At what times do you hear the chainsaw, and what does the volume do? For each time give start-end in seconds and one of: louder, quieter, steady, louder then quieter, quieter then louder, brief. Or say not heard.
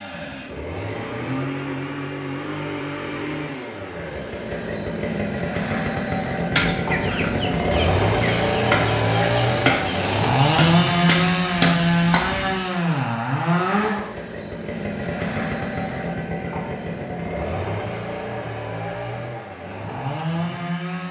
0.0-21.0 louder then quieter.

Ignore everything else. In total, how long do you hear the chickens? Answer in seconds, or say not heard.
6 s.